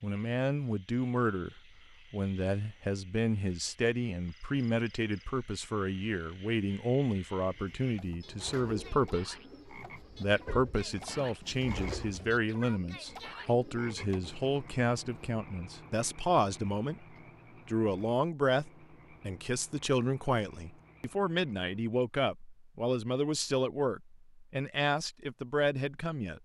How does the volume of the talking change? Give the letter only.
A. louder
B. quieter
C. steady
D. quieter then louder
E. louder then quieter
C.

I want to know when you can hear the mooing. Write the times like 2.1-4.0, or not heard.
not heard.